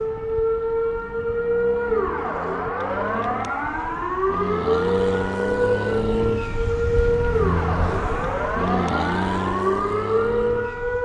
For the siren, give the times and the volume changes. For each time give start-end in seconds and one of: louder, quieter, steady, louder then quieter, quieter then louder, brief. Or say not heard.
0.0-11.0 steady.